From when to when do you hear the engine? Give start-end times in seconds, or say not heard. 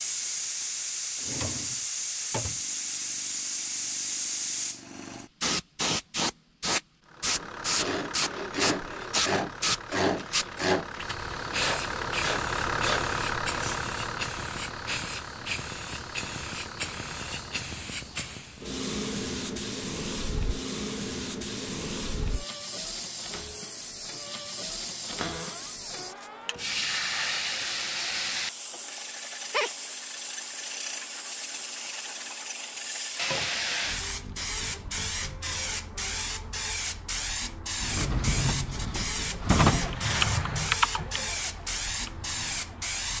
7.0-17.7, 39.2-43.1.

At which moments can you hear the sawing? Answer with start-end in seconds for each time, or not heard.
7.3-13.8.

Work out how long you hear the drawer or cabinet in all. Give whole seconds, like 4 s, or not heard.
5 s.